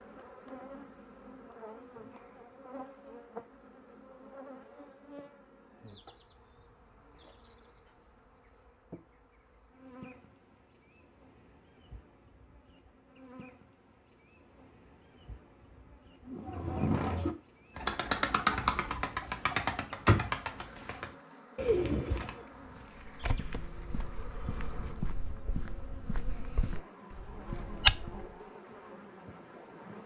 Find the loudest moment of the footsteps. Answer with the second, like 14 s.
28 s.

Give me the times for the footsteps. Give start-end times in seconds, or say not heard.
22.9-28.4.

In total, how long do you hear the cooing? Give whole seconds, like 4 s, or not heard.
6 s.